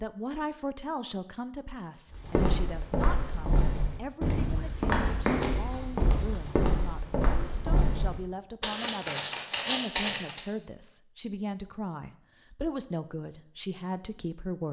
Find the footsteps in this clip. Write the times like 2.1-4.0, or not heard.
2.1-10.4.